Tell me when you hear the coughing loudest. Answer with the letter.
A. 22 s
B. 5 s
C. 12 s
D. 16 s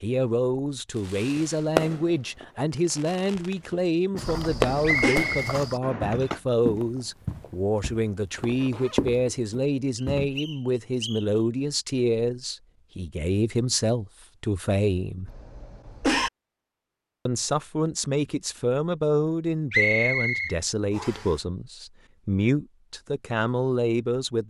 D.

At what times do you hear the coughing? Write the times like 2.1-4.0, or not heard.
4.3-5.2, 15.2-16.3.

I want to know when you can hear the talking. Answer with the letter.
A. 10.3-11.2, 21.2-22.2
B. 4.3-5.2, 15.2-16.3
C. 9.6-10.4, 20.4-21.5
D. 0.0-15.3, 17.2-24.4
D.